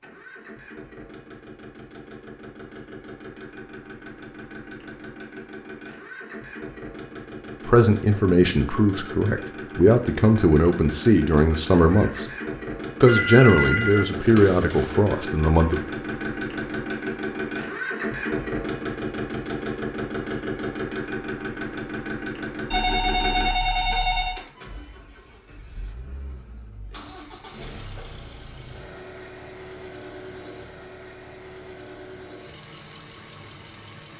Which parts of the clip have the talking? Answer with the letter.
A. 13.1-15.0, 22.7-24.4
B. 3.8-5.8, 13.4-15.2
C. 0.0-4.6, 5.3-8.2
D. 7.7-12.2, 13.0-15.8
D.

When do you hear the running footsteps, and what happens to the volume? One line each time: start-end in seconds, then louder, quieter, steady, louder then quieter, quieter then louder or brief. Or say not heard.
not heard.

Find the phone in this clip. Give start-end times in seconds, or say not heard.
13.1-15.0, 22.7-24.4.